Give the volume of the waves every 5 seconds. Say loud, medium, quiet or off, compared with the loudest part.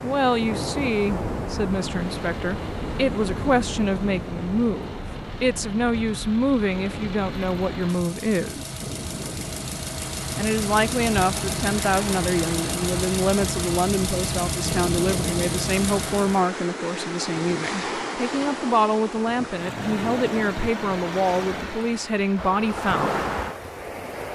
loud, medium, medium, loud, loud.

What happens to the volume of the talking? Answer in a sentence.
The loudness of the talking stays about the same.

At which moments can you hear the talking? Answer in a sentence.
The talking can be heard from 0.0 to 8.7 s and from 10.3 to 23.2 s.